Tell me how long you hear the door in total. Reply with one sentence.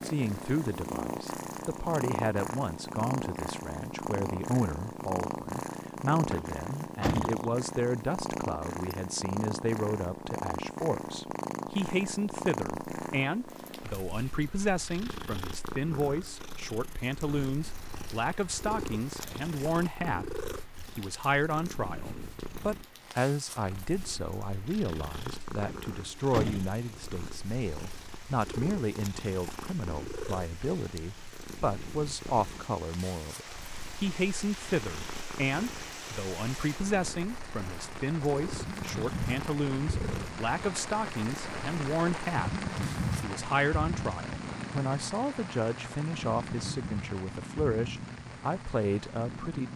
The door can be heard for 3 seconds in total.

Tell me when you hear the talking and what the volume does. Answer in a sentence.
The talking can be heard from 0.0 to 49.7 s, at a steady volume.